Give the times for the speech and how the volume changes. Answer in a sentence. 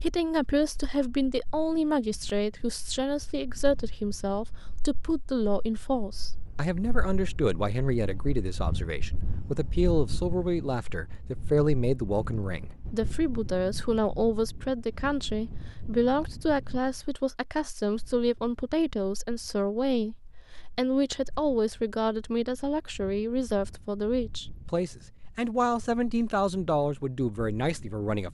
You can hear the speech from 0.0 to 28.2 s, at a steady volume.